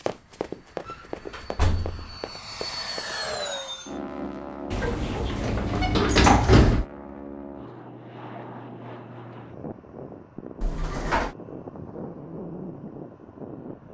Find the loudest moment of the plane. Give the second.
3 s.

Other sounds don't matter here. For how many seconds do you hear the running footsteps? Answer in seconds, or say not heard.
3 s.